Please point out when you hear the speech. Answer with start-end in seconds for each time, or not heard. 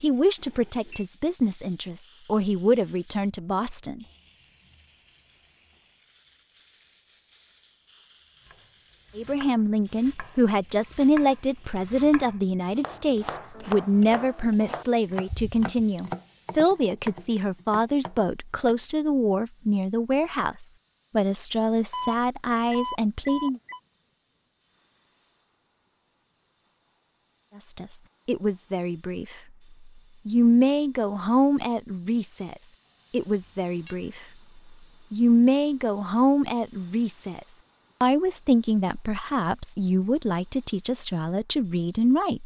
0.0-4.0, 9.2-23.6, 27.6-29.4, 30.2-34.2, 35.1-37.4, 38.0-42.4.